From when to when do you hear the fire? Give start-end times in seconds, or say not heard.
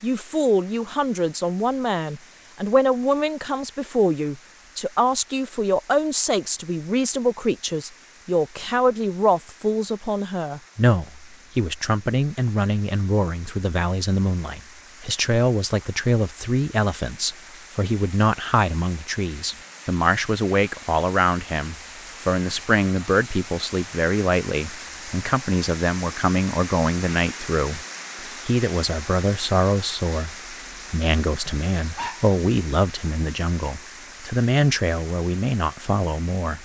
not heard.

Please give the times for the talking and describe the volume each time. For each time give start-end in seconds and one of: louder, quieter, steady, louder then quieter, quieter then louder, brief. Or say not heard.
0.0-27.8 steady
28.4-36.5 steady.